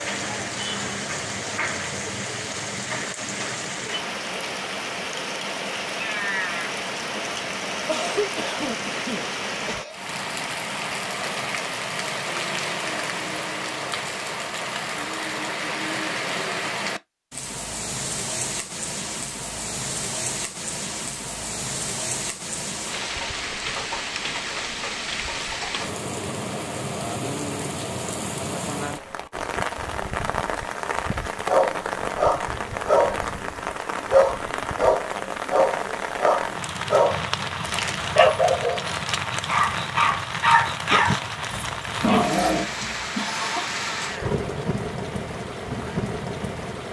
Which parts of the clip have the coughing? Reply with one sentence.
You can hear the coughing from 7.8 to 10.0 s and from 43.1 to 43.8 s.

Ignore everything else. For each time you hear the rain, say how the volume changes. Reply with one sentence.
The rain can be heard from 0.0 to 46.8 s, at a steady volume.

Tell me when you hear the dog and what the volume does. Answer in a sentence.
The dog can be heard briefly from 31.4 to 33.4 s; and from 34.1 to 43.0 s, at a steady volume.